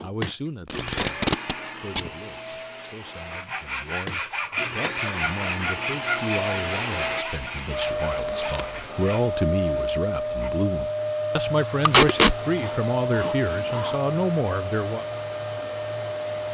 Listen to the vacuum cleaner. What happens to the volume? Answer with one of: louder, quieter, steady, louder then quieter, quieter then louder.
louder.